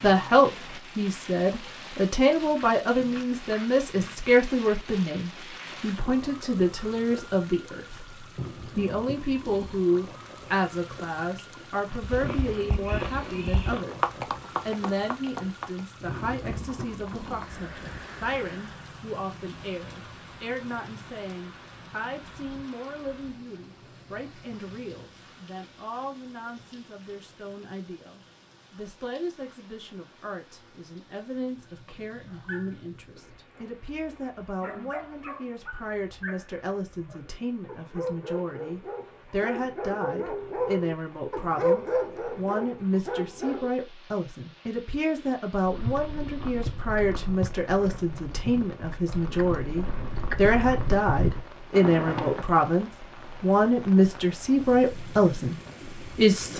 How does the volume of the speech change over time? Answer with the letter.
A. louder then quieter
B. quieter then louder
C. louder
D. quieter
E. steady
B.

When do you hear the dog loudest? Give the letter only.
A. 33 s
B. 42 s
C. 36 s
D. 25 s
B.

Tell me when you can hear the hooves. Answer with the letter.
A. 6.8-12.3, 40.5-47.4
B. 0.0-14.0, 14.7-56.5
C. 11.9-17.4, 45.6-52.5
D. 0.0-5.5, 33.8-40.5
C.